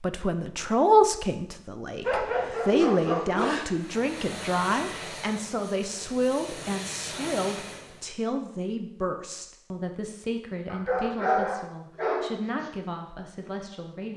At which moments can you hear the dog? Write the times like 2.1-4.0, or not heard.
2.0-3.7, 10.7-12.7.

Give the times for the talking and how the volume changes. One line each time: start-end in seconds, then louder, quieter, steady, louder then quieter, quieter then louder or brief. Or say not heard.
0.0-14.1 quieter.